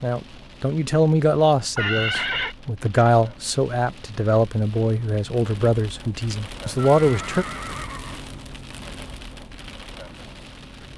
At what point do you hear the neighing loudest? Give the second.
2 s.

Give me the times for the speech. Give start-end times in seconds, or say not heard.
0.0-7.5.